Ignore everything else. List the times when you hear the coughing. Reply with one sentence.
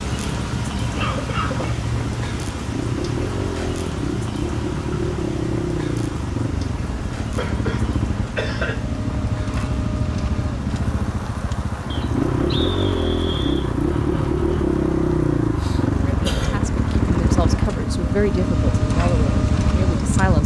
You can hear the coughing from 0.9 to 1.8 s, from 7.3 to 8.8 s and from 15.4 to 16.8 s.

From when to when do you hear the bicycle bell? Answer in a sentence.
You can't hear the bicycle bell here.